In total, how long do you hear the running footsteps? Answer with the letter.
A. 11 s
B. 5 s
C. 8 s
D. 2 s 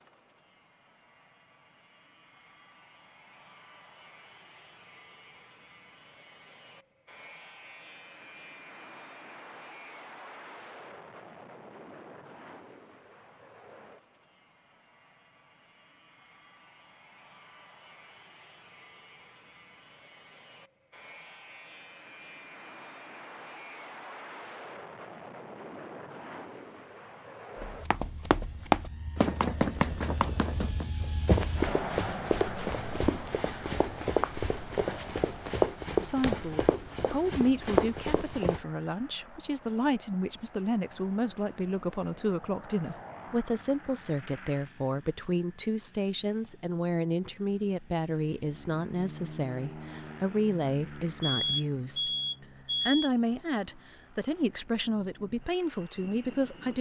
A.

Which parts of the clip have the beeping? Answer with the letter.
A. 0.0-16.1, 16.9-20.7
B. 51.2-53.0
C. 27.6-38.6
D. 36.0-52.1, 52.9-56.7
B.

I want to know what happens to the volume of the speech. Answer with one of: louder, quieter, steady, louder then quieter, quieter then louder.
steady.